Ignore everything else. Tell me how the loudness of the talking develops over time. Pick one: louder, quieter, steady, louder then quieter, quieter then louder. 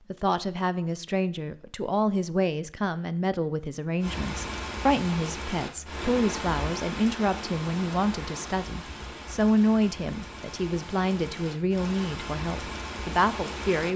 steady.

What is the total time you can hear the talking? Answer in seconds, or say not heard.
14 s.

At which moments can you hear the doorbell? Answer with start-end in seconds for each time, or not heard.
not heard.